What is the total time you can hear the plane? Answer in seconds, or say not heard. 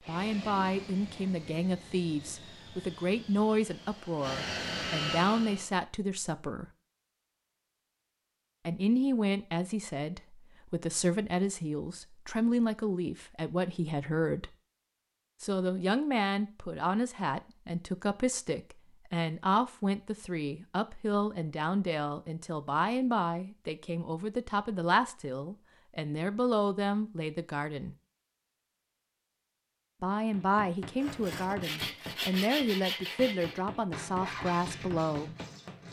6 s.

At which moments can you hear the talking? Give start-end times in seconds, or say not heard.
0.1-6.7, 8.7-14.6, 15.4-27.9, 30.0-35.3.